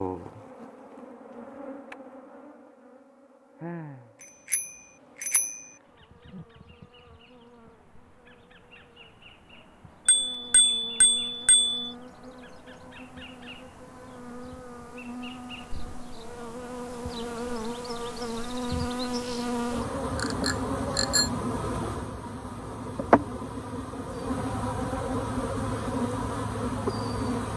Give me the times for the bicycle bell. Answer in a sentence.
You can hear the bicycle bell from 4.5 to 5.6 s, from 10.1 to 11.8 s and from 20.1 to 21.3 s.